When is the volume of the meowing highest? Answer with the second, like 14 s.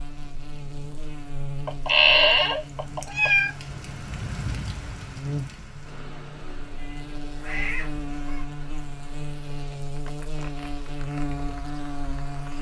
2 s.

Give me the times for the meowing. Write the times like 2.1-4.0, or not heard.
1.6-3.5, 6.8-8.4.